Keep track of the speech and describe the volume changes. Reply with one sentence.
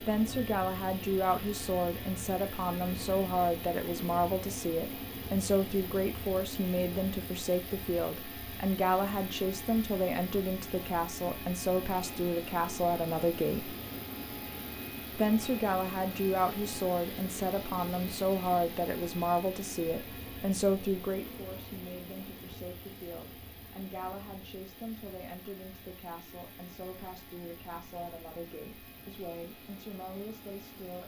The loudness of the speech goes down.